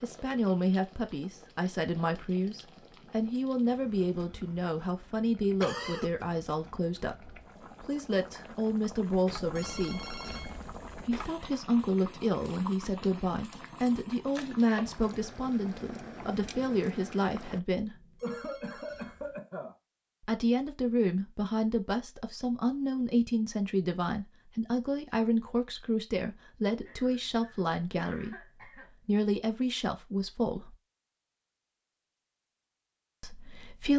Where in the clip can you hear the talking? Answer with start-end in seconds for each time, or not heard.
0.0-10.1, 10.9-18.0, 20.2-30.8, 33.2-33.9.